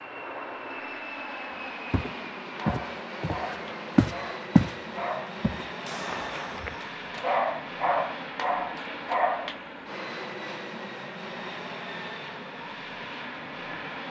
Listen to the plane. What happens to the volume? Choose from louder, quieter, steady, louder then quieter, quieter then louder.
steady.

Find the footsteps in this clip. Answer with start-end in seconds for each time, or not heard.
1.9-6.8.